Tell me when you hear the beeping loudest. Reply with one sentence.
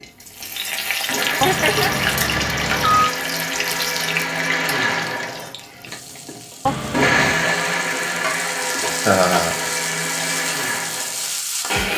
The volume of the beeping peaks at 3 seconds.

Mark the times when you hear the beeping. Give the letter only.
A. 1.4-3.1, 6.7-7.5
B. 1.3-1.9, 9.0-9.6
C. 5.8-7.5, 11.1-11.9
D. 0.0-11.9
A.